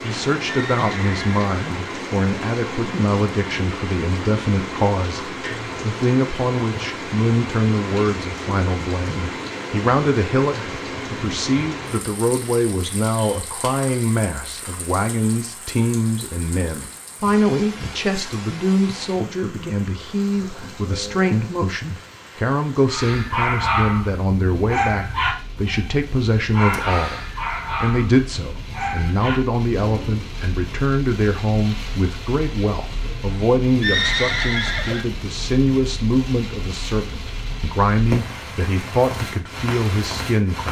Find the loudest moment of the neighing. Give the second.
34 s.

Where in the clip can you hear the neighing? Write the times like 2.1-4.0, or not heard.
0.5-1.6, 33.8-35.0.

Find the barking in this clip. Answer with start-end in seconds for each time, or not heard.
22.9-30.3.